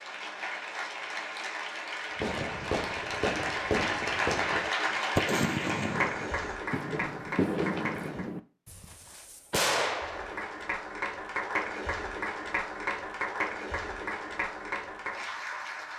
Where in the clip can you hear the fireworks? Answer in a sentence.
You can hear the fireworks from 2.2 to 10.5 s.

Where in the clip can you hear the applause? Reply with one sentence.
The applause can be heard from 0.0 to 8.3 s and from 9.9 to 15.9 s.